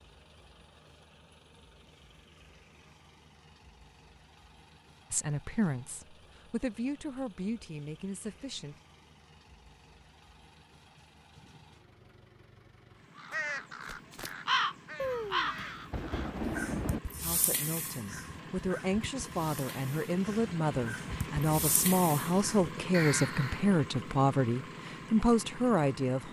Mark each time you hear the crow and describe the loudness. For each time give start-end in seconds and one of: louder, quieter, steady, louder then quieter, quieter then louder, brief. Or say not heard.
13.2-23.6 quieter then louder.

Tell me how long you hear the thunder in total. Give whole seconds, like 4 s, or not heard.
2 s.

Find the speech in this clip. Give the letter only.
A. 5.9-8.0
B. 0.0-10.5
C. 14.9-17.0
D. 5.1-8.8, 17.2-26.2
D.